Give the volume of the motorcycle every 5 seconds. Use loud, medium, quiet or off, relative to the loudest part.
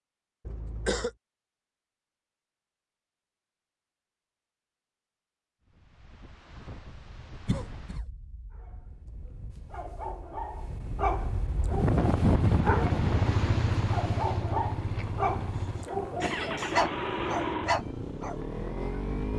off, off, loud, loud.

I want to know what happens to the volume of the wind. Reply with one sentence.
The volume of the wind goes up, then down.